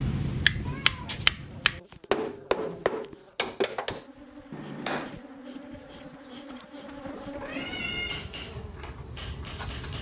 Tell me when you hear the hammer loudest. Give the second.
1 s.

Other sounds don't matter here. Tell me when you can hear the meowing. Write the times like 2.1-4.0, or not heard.
0.7-1.3, 7.4-8.2.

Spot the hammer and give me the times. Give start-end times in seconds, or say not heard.
0.0-5.2, 7.5-9.9.